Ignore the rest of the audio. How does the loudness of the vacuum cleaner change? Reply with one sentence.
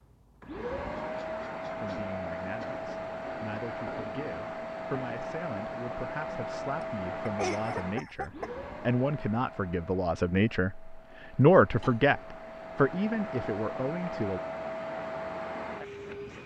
The volume of the vacuum cleaner goes down, then up.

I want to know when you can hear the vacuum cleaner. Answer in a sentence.
You can hear the vacuum cleaner from 0.0 to 16.4 s.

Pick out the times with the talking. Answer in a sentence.
The talking can be heard from 1.8 to 14.4 s.